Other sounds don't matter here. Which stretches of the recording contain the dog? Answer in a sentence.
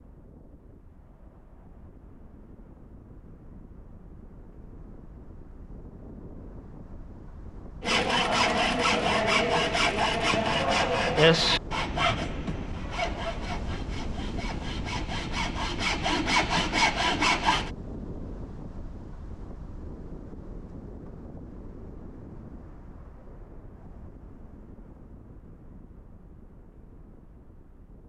The dog can't be heard in this clip.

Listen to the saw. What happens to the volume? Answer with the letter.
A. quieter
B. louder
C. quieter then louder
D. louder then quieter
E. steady
C.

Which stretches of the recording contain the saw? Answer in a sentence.
The saw can be heard from 7.8 to 17.7 s.